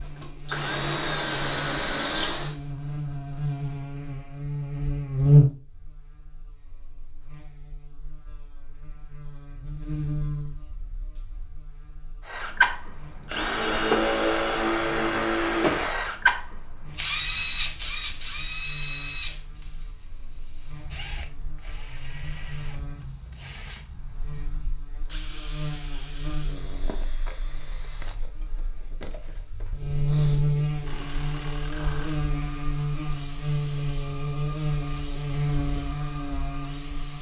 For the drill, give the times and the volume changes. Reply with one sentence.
The drill can be heard briefly from 0.0 to 2.5 s; and from 12.2 to 37.1 s, getting quieter.